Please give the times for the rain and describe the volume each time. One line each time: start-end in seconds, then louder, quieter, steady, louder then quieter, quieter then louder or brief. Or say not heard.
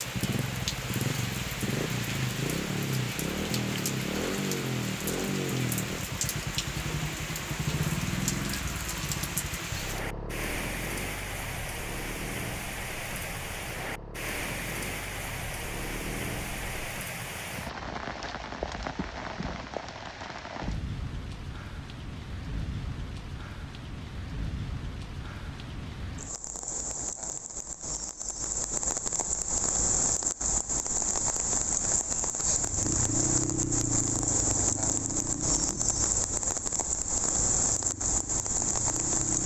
0.0-39.4 louder.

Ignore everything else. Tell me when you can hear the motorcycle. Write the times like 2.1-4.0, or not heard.
0.0-16.9, 32.5-39.4.